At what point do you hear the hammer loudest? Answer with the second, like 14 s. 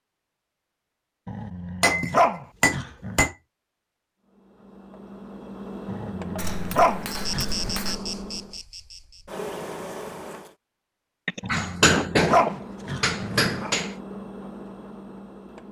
12 s.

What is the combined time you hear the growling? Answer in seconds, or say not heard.
6 s.